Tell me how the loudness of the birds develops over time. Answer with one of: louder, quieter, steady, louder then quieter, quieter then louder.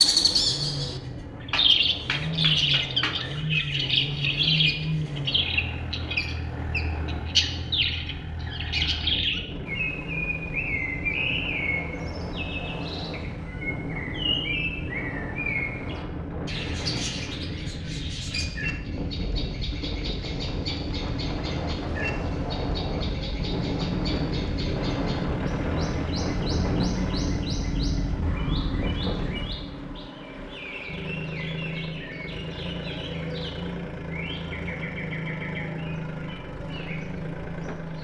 quieter.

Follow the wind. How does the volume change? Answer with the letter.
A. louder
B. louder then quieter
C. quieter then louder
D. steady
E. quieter
A.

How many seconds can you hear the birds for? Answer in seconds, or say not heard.
38 s.